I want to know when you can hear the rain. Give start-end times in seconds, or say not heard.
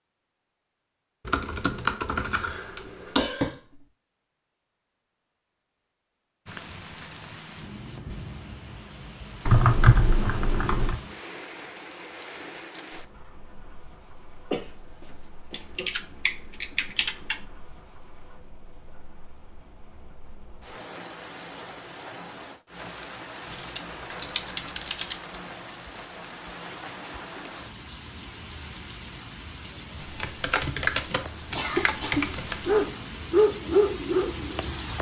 6.5-34.9.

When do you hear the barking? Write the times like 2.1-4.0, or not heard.
32.6-34.8.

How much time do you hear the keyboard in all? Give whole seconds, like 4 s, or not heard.
10 s.